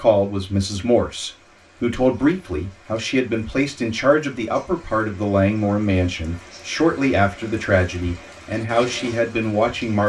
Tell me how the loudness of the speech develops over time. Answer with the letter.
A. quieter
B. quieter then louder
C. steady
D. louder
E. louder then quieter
C.